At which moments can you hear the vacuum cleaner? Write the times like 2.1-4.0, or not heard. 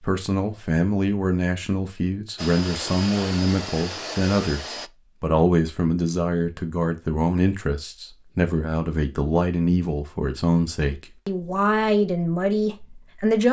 2.4-4.9.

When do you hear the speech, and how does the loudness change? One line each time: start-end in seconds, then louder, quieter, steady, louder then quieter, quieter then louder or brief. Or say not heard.
0.0-13.4 steady.